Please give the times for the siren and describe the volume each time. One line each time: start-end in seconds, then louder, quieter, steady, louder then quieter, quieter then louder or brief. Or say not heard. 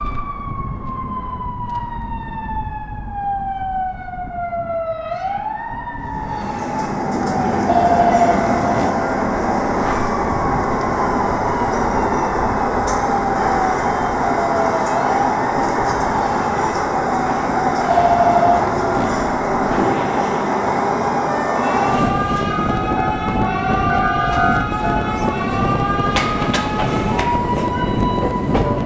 0.0-28.8 steady.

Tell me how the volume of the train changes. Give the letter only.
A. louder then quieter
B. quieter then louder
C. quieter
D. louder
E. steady
E.